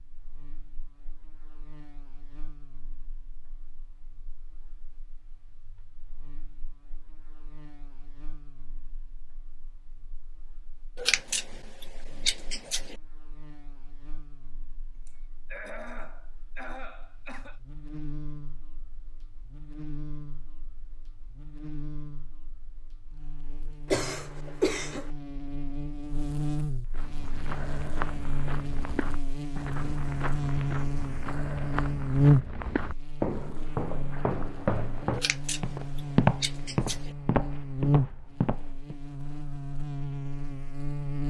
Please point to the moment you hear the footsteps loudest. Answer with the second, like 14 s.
36 s.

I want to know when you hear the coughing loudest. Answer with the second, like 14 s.
24 s.